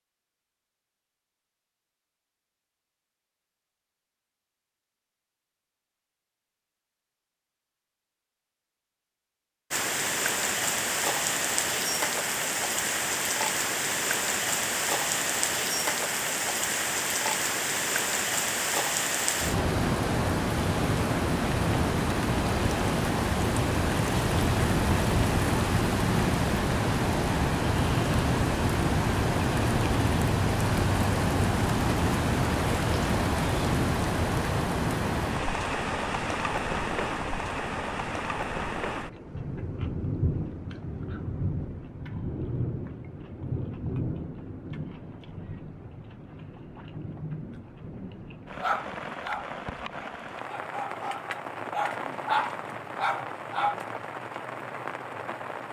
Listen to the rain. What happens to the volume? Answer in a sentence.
The volume of the rain goes down.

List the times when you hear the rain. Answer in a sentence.
You can hear the rain from 9.7 to 55.6 s.